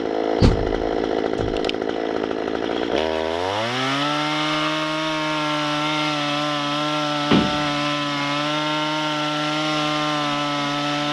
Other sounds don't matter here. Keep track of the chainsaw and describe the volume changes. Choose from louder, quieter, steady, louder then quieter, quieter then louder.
steady.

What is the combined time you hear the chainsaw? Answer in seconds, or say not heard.
11 s.